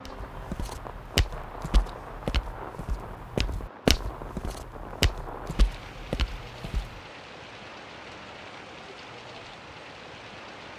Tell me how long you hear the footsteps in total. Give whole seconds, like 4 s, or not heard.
7 s.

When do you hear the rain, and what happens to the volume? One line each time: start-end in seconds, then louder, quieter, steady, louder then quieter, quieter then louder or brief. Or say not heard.
0.0-10.7 steady.